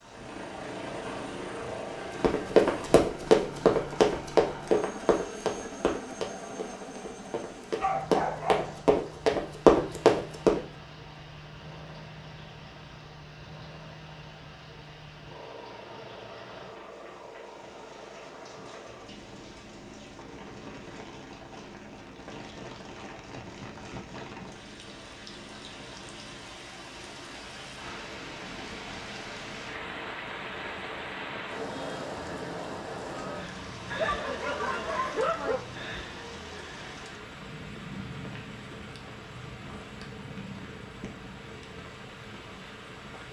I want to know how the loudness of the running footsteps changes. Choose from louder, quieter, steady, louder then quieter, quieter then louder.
quieter then louder.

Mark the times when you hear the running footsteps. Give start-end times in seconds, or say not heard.
2.2-10.6.